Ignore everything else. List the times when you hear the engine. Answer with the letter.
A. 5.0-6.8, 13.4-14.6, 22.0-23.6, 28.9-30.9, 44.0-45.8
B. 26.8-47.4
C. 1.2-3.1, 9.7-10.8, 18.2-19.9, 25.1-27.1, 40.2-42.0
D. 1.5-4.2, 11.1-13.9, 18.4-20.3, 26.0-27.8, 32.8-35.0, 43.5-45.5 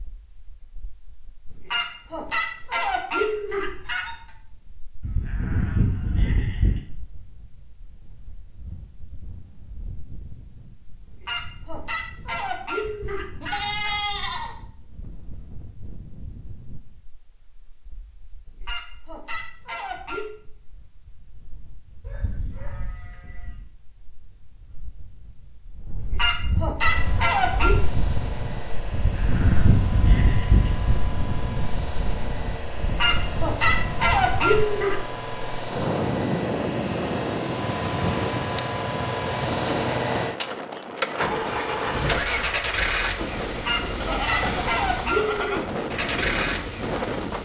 B.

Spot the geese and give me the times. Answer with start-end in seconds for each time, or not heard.
1.5-4.2, 11.1-13.9, 18.4-20.3, 26.0-27.8, 32.8-35.0, 43.5-45.5.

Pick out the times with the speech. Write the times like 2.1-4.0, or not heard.
not heard.